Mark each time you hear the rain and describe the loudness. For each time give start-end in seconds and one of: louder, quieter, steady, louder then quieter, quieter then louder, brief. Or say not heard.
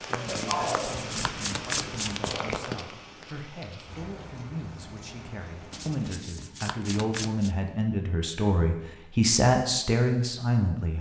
0.0-6.2 quieter.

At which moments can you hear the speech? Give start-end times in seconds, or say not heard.
0.0-10.9.